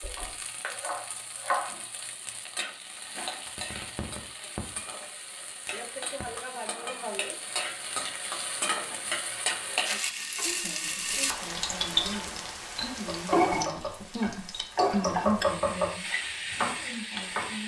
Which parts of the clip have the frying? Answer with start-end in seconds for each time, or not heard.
0.0-17.6.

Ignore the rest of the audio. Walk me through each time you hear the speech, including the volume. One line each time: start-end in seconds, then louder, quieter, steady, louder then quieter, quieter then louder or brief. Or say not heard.
10.4-17.6 louder then quieter.